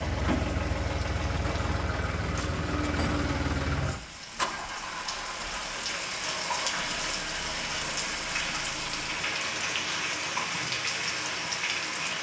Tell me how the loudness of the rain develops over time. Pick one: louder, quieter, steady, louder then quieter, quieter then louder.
louder.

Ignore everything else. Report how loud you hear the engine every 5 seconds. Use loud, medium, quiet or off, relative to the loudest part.
loud, medium, medium.